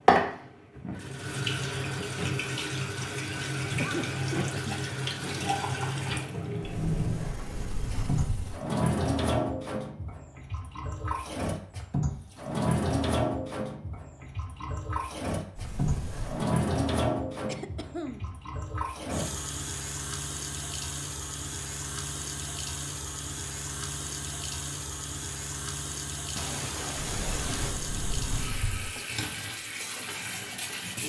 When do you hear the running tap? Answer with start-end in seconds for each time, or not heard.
0.1-31.0.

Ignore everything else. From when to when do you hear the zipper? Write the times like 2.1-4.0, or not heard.
not heard.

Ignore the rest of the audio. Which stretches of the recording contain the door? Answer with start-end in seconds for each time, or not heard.
6.6-8.6, 15.6-16.5, 27.2-28.9.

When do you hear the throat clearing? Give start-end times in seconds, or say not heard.
3.8-4.8, 17.4-18.4, 26.4-27.8.